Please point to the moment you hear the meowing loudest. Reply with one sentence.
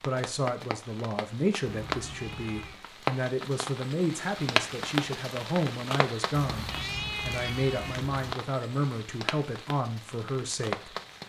The loudest moment of the meowing is at 7 seconds.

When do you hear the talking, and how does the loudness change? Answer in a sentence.
The talking can be heard from 0.0 to 11.2 s, at a steady volume.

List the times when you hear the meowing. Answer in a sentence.
The meowing can be heard from 1.6 to 2.8 s and from 6.3 to 8.3 s.